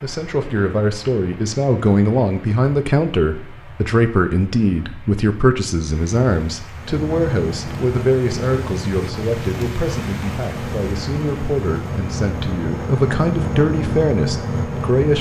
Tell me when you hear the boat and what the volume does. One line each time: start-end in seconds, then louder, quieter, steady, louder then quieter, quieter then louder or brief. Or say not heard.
6.8-15.1 louder.